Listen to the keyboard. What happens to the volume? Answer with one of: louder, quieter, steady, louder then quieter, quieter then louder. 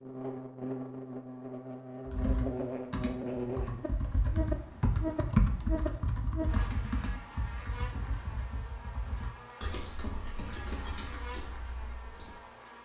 louder then quieter.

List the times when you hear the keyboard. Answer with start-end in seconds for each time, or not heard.
2.0-12.4.